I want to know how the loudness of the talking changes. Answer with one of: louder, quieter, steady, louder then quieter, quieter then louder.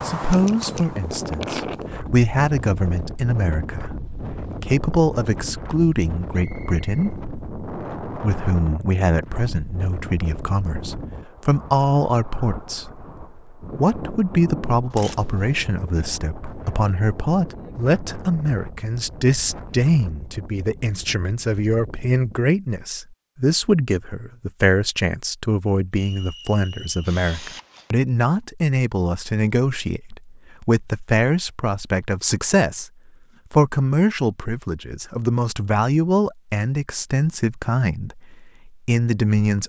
steady.